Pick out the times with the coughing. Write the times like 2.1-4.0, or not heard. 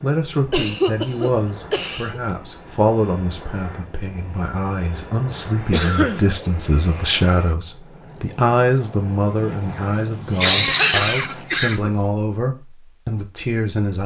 0.5-2.2, 5.7-6.2, 10.3-11.9.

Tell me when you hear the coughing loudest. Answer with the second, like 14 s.
11 s.